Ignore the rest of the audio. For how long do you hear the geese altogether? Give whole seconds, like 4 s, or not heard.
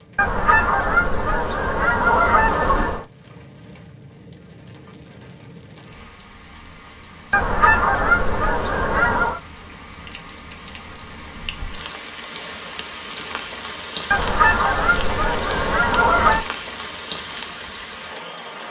7 s.